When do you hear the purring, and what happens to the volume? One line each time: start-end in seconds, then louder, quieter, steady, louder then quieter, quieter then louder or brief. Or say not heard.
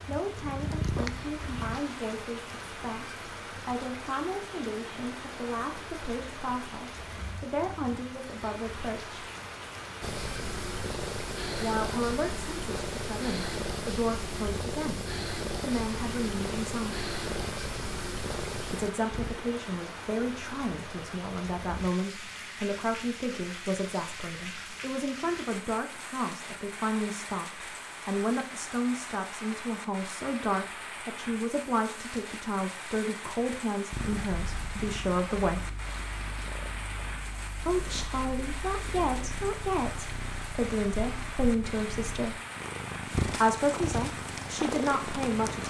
0.3-1.8 brief
10.0-19.4 steady
33.9-45.6 louder.